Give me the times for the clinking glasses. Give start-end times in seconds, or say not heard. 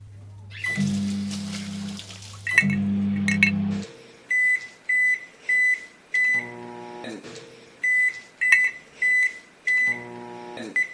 2.5-3.5, 8.4-9.3.